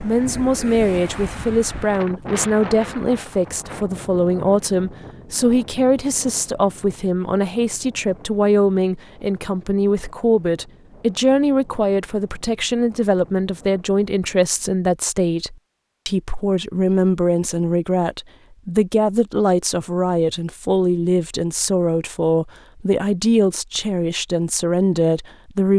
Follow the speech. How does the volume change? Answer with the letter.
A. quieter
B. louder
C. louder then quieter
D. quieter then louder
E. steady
E.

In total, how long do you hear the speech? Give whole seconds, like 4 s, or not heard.
26 s.